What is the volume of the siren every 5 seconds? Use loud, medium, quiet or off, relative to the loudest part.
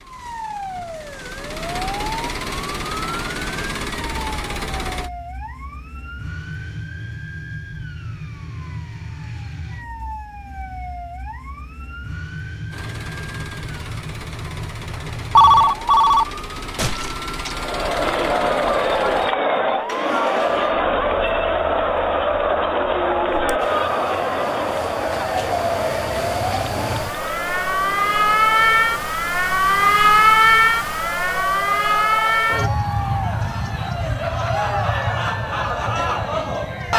quiet, quiet, quiet, quiet, quiet, loud, loud, quiet.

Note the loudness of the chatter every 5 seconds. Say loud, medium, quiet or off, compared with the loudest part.
off, off, off, loud, loud, medium, medium, loud.